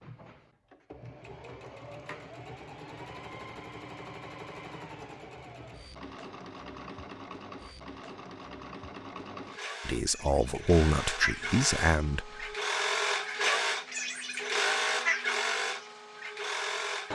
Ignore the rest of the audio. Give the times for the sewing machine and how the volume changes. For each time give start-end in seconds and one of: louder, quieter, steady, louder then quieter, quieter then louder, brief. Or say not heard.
0.0-17.1 louder.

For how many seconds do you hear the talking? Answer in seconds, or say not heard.
3 s.